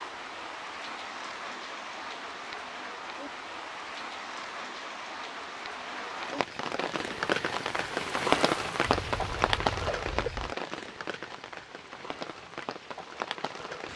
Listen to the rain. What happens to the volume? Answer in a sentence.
The volume of the rain goes up, then down.